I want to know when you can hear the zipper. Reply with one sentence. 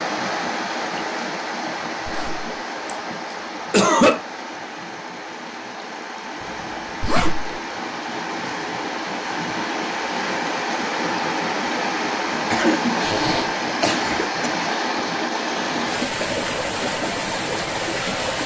You can hear the zipper from 2.0 to 2.5 s, from 7.0 to 7.6 s and from 13.1 to 13.5 s.